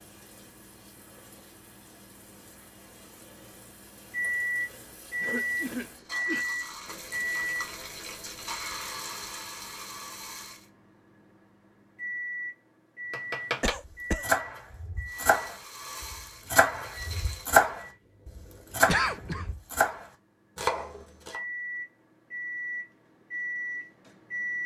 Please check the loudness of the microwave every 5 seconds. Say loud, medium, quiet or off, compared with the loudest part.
loud, loud, medium, quiet, loud.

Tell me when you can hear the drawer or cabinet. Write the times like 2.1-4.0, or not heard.
not heard.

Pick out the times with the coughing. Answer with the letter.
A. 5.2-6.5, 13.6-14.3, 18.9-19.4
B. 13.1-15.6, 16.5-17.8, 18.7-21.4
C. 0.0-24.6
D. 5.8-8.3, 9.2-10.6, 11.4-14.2
A.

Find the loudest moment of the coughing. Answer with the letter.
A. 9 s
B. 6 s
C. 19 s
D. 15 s
C.